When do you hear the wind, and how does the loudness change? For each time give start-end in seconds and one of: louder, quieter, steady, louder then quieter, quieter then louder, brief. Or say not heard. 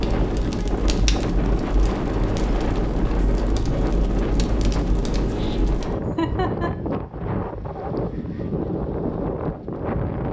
0.0-10.2 steady.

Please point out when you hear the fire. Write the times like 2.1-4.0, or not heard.
0.0-6.0.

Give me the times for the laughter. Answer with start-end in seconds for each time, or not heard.
6.0-6.7.